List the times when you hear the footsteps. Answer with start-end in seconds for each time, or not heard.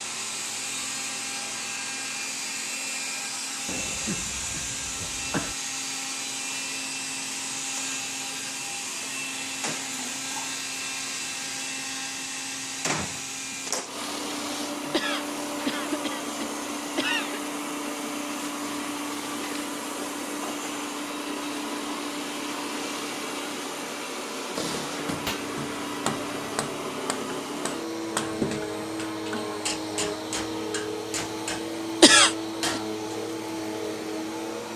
not heard.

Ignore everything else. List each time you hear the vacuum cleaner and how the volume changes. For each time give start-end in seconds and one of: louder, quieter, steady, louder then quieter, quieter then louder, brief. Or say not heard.
0.0-34.7 steady.